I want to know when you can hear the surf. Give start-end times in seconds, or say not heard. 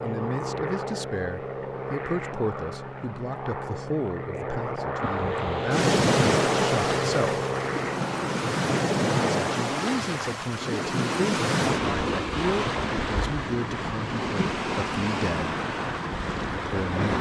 5.0-17.1.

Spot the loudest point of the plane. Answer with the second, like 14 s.
7 s.